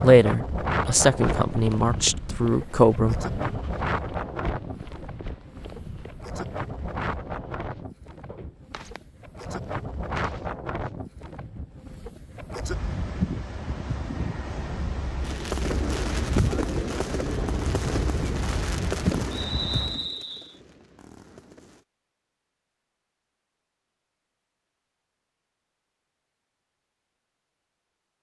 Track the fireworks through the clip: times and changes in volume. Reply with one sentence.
You can hear the fireworks from 15.2 to 21.9 s, getting quieter.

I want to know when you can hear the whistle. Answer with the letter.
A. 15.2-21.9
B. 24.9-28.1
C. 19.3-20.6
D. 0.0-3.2
C.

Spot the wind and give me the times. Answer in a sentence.
The wind can be heard from 0.0 to 20.1 s.